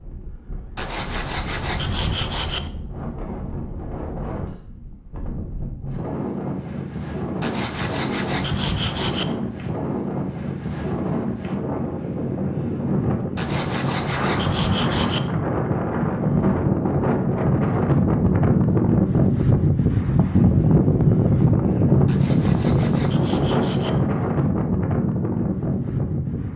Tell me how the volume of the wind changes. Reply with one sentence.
The volume of the wind goes up.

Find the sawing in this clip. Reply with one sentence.
The sawing can be heard from 0.8 to 2.7 s, from 7.4 to 9.3 s, from 13.3 to 15.3 s and from 22.1 to 24.0 s.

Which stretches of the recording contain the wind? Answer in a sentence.
You can hear the wind from 0.0 to 26.5 s.